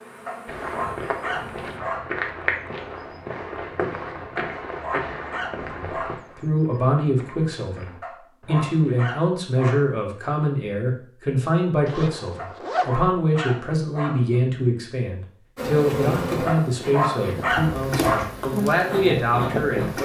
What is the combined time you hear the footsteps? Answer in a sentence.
You can hear the footsteps for 9 seconds altogether.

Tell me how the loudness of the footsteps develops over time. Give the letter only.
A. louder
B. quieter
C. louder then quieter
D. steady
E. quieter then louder
B.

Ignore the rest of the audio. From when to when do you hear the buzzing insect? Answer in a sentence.
You can hear the buzzing insect from 0.0 to 1.8 s and from 15.6 to 20.0 s.